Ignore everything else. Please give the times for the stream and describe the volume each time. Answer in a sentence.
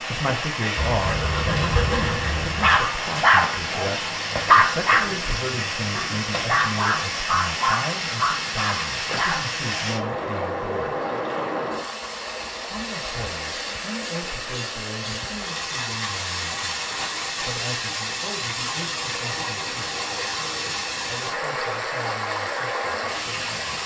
The stream can be heard from 0.0 to 23.8 s, at a steady volume.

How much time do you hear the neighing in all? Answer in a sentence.
The neighing can be heard for 2 seconds in total.